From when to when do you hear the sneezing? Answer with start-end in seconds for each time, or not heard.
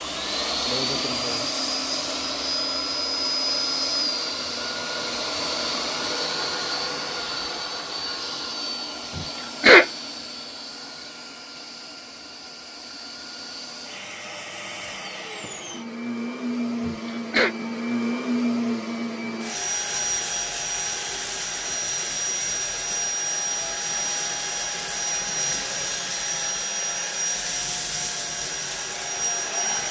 9.2-9.8, 16.9-17.5.